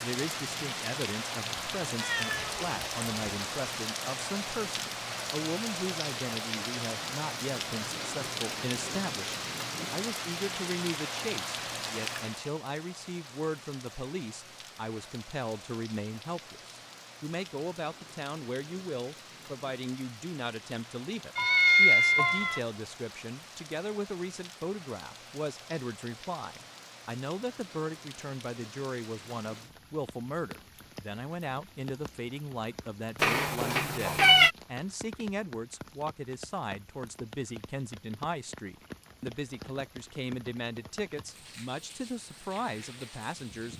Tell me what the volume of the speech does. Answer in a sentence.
The loudness of the speech stays about the same.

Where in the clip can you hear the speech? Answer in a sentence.
The speech can be heard from 0.0 to 43.7 s.